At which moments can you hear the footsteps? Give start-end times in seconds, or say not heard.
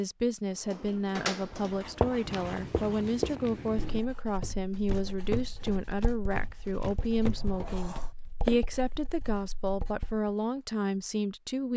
2.2-8.6.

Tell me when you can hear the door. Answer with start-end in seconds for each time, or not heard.
0.5-2.5, 7.3-8.2.